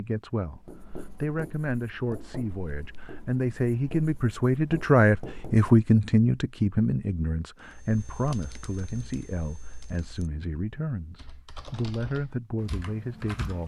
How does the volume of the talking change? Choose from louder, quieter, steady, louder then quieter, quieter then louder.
louder then quieter.